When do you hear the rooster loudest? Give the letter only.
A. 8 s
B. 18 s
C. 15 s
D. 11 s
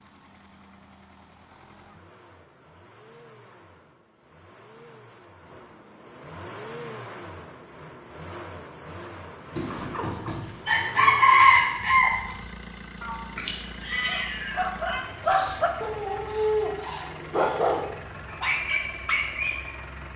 D.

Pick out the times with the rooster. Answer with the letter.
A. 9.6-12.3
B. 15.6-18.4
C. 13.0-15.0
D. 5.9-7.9
A.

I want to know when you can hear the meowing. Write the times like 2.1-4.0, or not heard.
13.0-15.0.